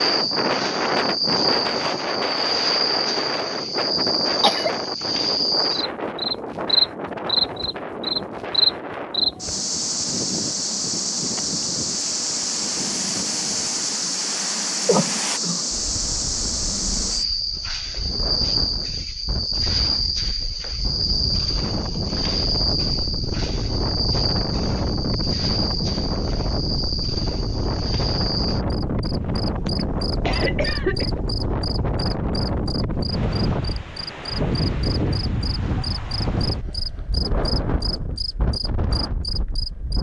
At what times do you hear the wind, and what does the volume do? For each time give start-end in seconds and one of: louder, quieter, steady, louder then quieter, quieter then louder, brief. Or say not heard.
0.0-39.9 quieter then louder.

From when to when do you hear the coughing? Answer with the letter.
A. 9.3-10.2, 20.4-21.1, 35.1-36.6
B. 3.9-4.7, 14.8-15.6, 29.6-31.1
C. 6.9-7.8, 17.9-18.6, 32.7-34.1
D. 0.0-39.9
B.